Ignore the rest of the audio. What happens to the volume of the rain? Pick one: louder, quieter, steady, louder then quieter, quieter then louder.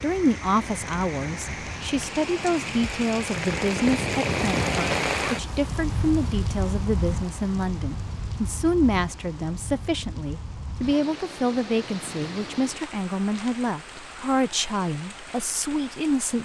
louder then quieter.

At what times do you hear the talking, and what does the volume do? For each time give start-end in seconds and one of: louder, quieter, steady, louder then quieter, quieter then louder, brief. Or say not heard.
0.0-16.3 steady.